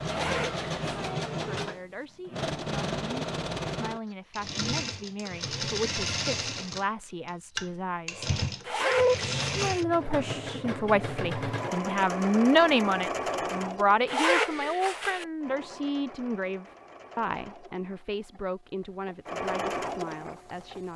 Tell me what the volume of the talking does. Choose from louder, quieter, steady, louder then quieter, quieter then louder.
louder then quieter.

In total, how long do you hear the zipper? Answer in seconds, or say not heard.
3 s.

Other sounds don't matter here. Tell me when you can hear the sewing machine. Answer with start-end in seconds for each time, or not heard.
0.0-20.9.